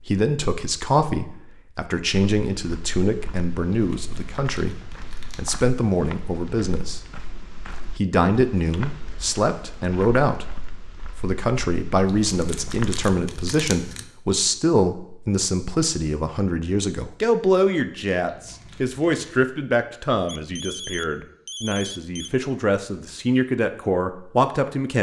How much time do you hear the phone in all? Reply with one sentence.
You can hear the phone for 2 seconds altogether.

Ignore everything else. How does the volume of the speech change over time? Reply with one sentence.
The loudness of the speech stays about the same.